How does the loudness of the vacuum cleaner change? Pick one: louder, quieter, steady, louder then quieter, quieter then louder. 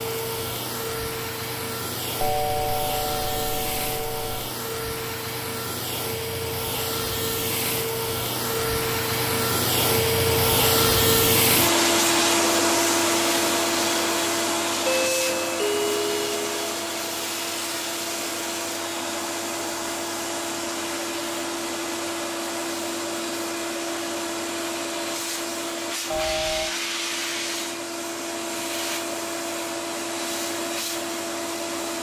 louder then quieter.